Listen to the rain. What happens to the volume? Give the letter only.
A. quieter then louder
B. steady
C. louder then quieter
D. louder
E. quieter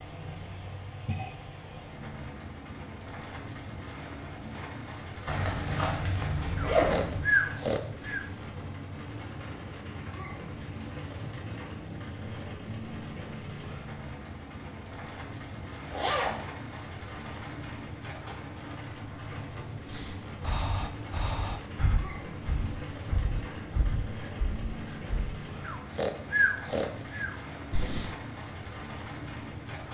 B.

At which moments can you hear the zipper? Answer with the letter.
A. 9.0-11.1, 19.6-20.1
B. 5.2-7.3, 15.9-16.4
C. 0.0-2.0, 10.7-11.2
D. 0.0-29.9
B.